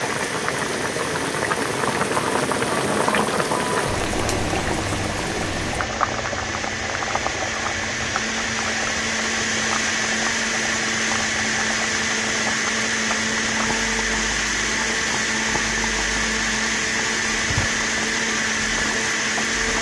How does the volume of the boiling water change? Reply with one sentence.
The volume of the boiling water goes down.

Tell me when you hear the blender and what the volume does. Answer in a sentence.
You can hear the blender from 0.0 to 19.7 s, getting louder.